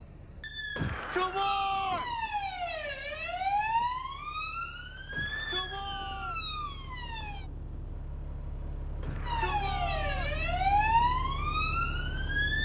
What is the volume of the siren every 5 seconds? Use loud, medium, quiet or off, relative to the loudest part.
medium, medium, loud.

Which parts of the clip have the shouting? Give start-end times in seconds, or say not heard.
0.8-2.1, 5.1-6.4, 9.0-10.4.